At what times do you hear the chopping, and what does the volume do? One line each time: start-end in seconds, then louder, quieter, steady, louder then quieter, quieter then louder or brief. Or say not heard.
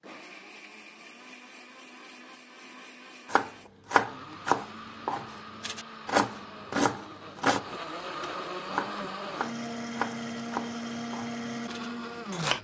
3.3-12.5 quieter.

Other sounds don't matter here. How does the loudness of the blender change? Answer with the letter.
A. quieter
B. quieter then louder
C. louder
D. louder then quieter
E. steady
C.